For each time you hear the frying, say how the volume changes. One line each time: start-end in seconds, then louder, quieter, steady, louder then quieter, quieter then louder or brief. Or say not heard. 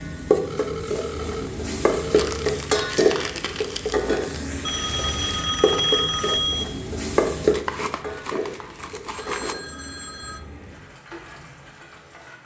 0.0-12.4 quieter.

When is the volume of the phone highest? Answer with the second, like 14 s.
6 s.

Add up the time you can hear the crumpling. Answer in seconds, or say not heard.
4 s.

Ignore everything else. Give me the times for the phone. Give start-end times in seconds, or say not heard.
0.5-2.6, 4.7-6.7, 9.2-10.4.